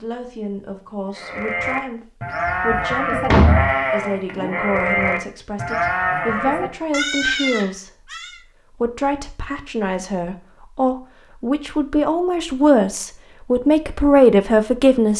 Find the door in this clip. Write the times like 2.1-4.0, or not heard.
2.5-3.8.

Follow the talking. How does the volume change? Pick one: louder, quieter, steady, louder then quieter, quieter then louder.
louder.